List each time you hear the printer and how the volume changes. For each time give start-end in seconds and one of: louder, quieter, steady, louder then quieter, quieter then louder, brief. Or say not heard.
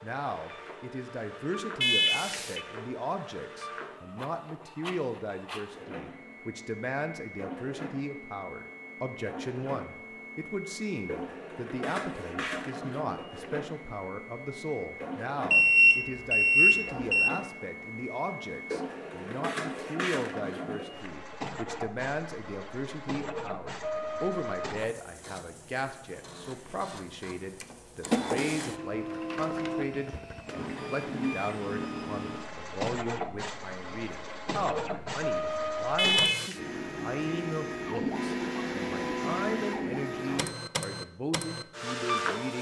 0.0-42.5 louder.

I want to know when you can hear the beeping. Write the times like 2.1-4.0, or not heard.
1.8-2.6, 15.5-17.3, 36.0-36.5.